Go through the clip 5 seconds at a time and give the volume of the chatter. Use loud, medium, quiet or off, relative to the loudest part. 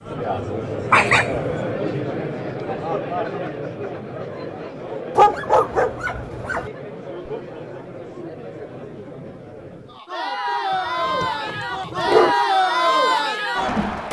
medium, quiet, loud.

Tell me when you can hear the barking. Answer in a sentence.
The barking can be heard from 0.9 to 1.6 s, from 5.2 to 6.7 s and from 10.7 to 12.3 s.